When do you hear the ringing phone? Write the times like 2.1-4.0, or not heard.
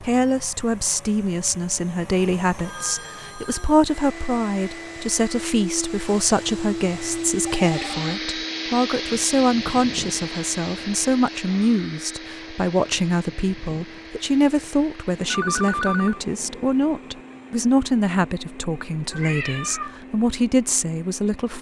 2.6-3.8, 7.4-8.0, 15.3-16.2.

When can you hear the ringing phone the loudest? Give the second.
16 s.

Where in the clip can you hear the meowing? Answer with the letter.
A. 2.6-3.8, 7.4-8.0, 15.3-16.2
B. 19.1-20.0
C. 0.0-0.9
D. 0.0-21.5
B.